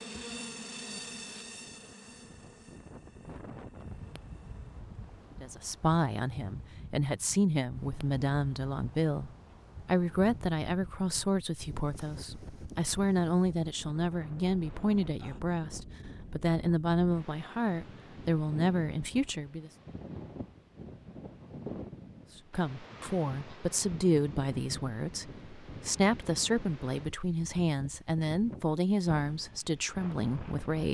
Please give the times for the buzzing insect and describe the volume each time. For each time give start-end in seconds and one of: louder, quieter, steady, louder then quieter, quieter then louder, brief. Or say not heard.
0.0-4.8 quieter.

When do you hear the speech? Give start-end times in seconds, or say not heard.
5.4-19.7, 22.5-30.8.